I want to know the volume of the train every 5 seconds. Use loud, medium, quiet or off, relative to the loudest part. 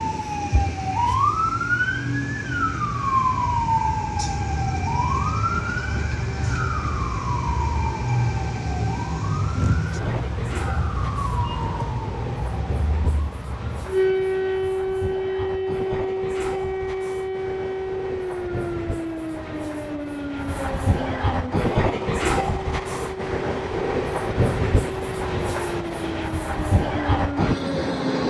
medium, medium, medium, medium, loud, loud.